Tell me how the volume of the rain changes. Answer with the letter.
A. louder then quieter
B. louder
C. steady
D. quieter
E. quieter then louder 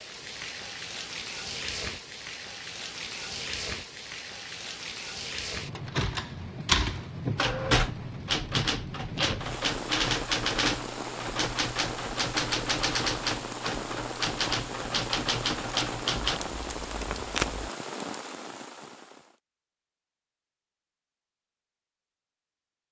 C.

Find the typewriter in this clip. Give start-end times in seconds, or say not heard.
5.8-16.4.